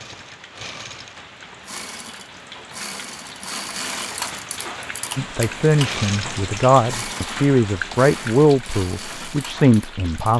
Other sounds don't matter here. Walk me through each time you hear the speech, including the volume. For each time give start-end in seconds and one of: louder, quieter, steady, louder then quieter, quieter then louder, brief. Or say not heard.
5.2-10.3 steady.